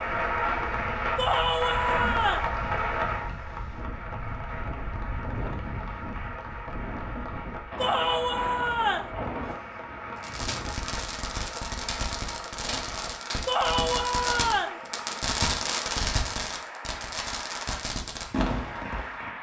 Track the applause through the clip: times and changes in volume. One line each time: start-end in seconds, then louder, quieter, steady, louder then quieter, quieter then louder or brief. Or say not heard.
0.0-19.3 quieter.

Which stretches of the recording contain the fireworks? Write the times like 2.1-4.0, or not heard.
10.2-19.3.